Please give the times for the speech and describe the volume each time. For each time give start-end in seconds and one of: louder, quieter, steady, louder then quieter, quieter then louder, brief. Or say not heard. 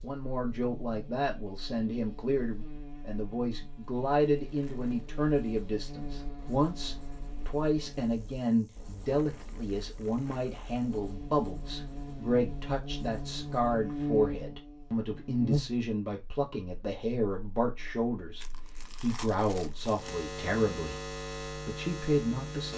0.0-22.7 steady.